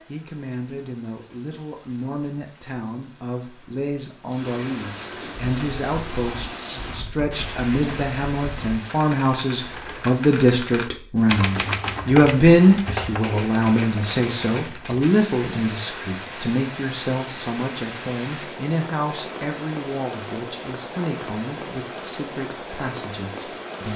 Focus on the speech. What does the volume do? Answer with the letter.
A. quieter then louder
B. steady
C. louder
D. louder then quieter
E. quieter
D.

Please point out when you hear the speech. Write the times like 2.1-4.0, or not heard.
0.1-23.9.